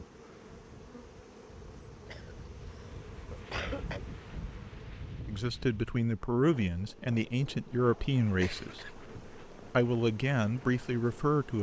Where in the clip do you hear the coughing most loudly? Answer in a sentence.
The volume of the coughing peaks at 4 seconds.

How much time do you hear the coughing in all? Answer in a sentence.
You can hear the coughing for 3 seconds altogether.